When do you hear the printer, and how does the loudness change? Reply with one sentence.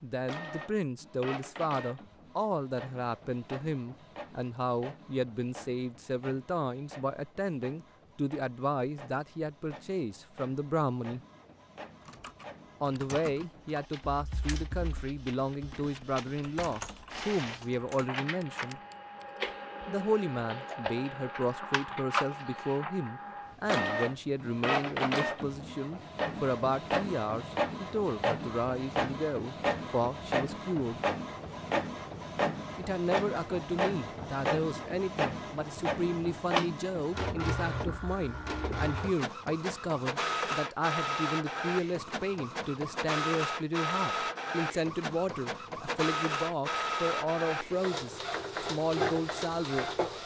You can hear the printer from 0.2 to 50.2 s, getting louder.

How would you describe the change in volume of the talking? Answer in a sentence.
The volume of the talking stays about the same.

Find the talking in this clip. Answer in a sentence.
You can hear the talking from 0.0 to 11.2 s, from 12.8 to 18.8 s, from 19.9 to 31.0 s and from 32.8 to 49.9 s.